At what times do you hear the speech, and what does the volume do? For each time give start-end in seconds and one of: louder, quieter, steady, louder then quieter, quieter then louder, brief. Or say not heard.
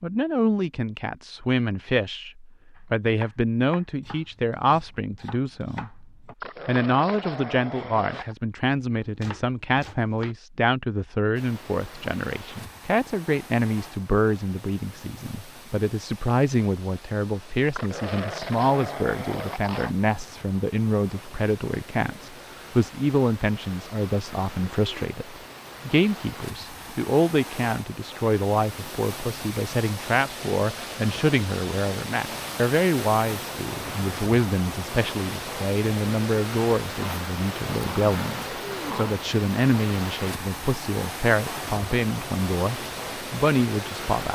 0.0-6.0 steady
6.7-44.3 steady.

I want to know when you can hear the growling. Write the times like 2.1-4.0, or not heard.
6.4-8.3, 17.8-19.9, 37.0-39.2.